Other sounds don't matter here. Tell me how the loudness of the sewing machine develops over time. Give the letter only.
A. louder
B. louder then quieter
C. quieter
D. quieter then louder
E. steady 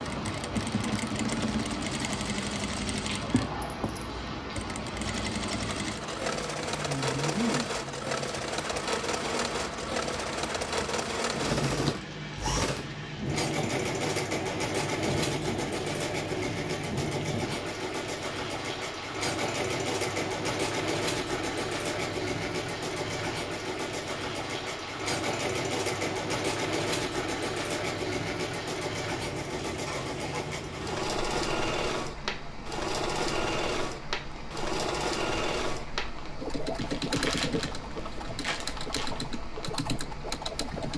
E.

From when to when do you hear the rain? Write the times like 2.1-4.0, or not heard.
0.0-40.9.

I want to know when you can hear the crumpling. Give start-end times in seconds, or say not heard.
36.8-39.2.